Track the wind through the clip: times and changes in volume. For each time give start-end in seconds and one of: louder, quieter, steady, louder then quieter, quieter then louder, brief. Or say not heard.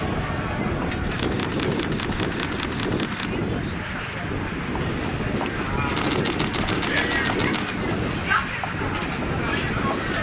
0.0-10.1 steady.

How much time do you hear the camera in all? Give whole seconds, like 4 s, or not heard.
4 s.